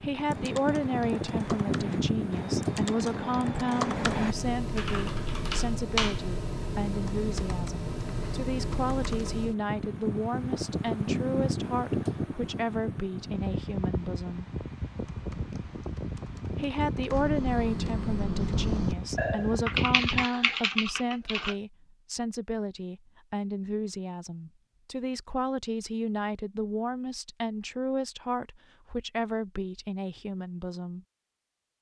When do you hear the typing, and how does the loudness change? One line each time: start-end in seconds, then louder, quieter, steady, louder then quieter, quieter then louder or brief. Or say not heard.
0.2-9.3 louder then quieter
14.9-21.6 louder.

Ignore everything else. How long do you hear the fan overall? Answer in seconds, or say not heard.
20 s.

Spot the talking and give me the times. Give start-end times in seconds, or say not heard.
0.0-14.4, 16.6-31.1.